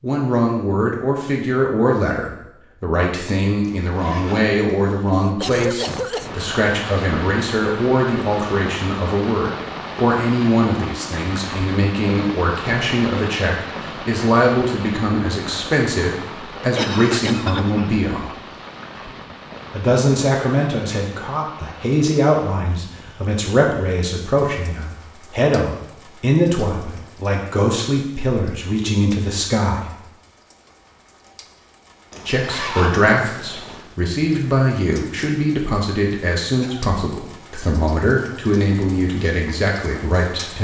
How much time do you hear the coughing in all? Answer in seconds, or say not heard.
3 s.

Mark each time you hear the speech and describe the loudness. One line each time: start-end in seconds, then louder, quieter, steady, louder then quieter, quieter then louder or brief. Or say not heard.
0.0-18.4 steady
19.7-29.9 steady
32.2-40.5 steady.